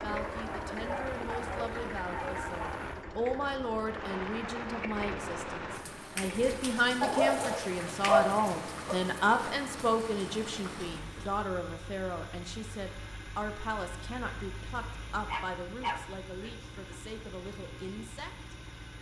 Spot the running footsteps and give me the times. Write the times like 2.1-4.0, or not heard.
not heard.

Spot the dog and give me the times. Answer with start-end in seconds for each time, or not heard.
0.1-2.8, 7.0-8.9, 15.2-16.7.